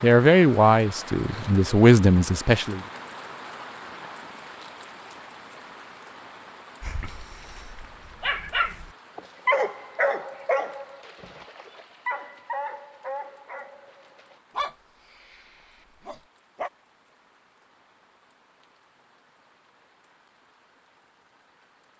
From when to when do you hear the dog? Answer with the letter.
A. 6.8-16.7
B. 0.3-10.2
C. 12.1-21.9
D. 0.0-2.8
A.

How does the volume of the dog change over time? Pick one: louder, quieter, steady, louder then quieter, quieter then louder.
louder then quieter.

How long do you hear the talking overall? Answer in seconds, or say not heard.
3 s.